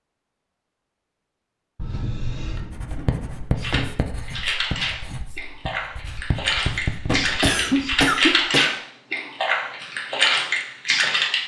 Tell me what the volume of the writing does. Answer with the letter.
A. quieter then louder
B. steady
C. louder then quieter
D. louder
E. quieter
A.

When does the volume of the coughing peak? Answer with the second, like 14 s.
8 s.